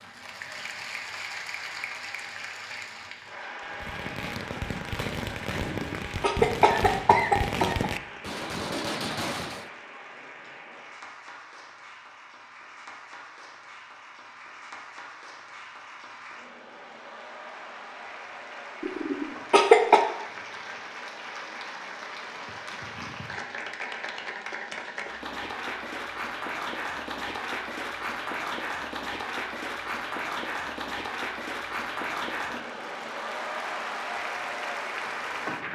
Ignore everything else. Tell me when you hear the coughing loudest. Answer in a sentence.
The volume of the coughing peaks at 20 seconds.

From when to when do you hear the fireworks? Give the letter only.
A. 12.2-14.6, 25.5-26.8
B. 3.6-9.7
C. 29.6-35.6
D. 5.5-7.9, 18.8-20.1
B.